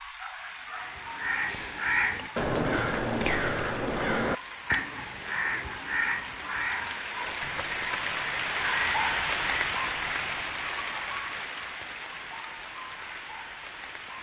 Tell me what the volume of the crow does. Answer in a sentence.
The loudness of the crow goes down.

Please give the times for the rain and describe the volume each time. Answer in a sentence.
You can hear the rain from 0.0 to 14.1 s, getting louder then quieter.